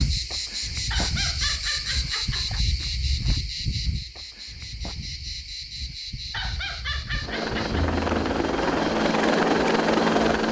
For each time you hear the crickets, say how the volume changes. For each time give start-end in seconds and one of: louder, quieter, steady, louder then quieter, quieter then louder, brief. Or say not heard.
0.0-10.4 quieter.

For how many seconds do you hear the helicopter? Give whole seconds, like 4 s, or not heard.
3 s.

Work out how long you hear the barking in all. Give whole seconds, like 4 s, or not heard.
3 s.